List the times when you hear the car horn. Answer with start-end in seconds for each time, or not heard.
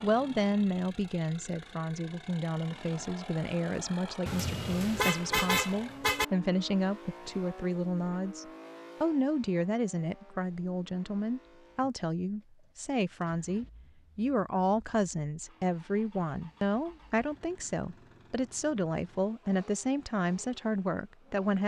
4.2-6.2.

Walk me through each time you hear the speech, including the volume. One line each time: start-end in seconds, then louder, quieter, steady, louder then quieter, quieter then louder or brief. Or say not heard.
0.0-21.6 steady.